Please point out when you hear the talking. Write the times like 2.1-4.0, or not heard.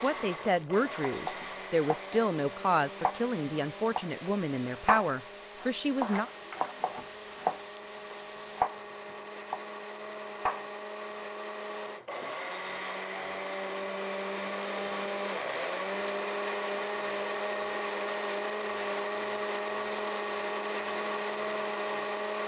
0.0-6.3.